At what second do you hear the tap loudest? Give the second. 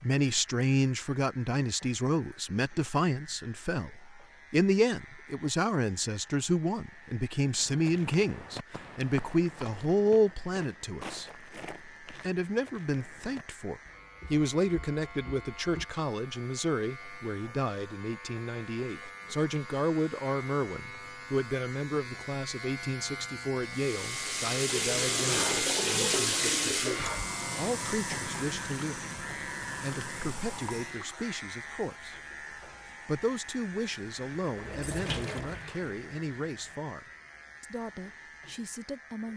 26 s.